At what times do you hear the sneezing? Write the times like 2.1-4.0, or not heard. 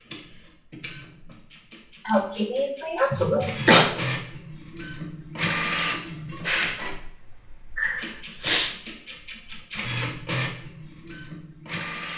2.0-3.9, 7.8-8.7.